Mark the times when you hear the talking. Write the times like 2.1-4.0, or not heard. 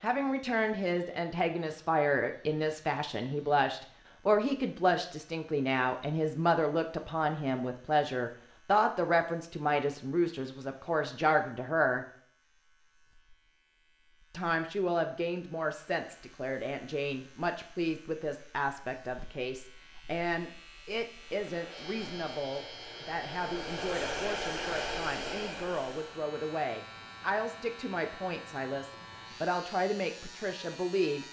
0.0-12.1, 14.3-31.2.